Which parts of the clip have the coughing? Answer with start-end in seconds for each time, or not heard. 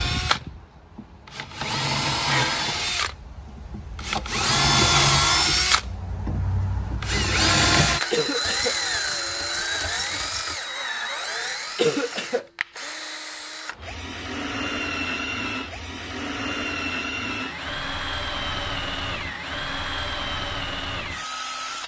8.1-8.8, 11.8-12.4.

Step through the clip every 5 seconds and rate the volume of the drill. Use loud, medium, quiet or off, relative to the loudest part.
loud, loud, medium, medium, medium.